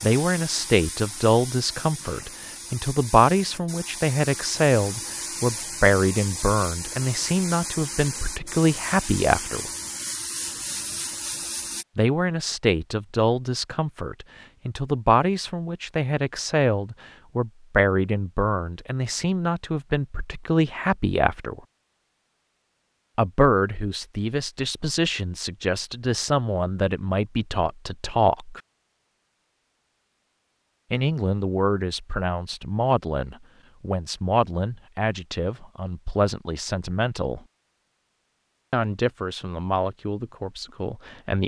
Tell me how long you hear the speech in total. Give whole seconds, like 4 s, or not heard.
34 s.